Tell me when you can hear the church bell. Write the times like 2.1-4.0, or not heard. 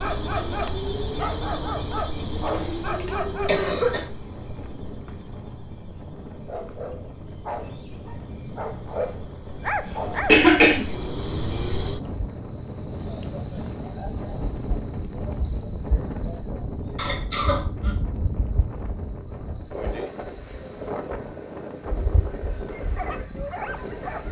not heard.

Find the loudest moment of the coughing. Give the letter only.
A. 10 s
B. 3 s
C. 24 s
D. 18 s
A.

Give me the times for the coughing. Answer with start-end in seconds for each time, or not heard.
2.4-4.0, 9.8-10.8, 16.9-17.9.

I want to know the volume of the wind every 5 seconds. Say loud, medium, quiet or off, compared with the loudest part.
medium, medium, loud, loud, loud.